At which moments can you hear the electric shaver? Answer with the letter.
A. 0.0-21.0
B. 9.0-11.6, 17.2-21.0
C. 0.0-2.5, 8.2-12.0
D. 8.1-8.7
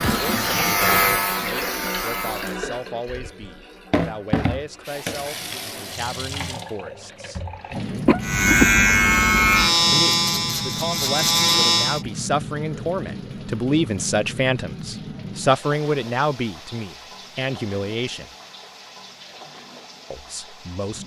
C.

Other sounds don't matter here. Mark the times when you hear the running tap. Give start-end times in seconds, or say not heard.
0.0-21.0.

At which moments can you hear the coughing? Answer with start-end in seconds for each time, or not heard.
8.1-8.7.